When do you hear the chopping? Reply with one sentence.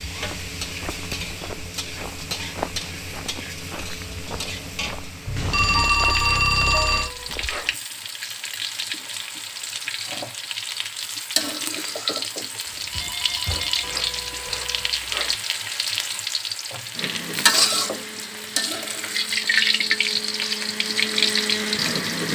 You can't hear the chopping here.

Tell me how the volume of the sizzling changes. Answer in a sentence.
The volume of the sizzling goes up.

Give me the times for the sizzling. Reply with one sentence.
The sizzling can be heard from 0.0 to 22.3 s.